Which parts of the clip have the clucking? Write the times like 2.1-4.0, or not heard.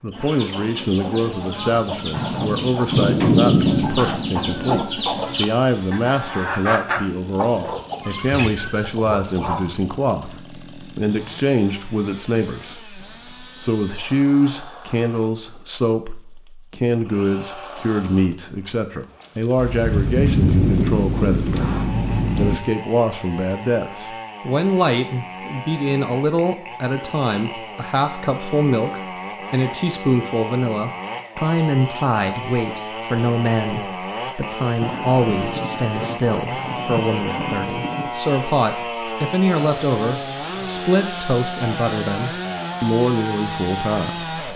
0.1-9.7.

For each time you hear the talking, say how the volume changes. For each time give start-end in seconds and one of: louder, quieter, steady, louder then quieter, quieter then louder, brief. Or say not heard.
0.0-44.3 steady.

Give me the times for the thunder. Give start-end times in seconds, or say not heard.
2.1-4.8, 19.6-22.6, 34.8-38.1.